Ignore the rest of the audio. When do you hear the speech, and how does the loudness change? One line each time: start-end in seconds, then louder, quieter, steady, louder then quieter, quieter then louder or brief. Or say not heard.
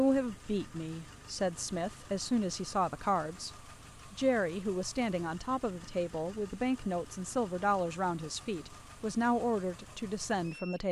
0.0-10.8 steady.